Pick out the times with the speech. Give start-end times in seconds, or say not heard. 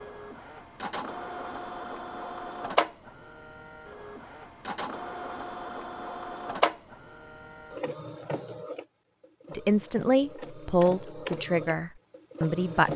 9.5-12.9.